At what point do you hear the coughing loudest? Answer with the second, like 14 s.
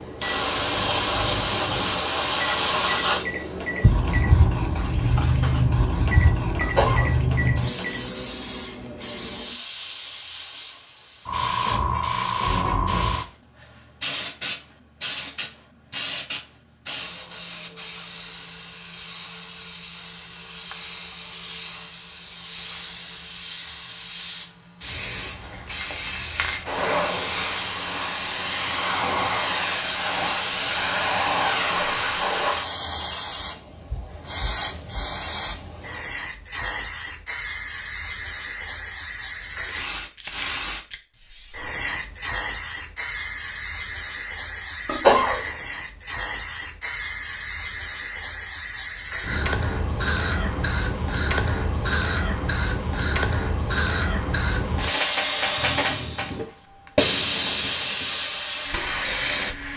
45 s.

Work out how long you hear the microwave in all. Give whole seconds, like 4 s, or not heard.
8 s.